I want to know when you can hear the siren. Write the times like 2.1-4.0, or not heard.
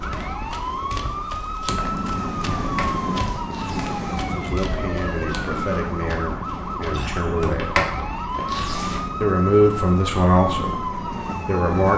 0.0-11.9.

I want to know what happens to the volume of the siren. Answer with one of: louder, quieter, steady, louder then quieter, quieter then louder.
steady.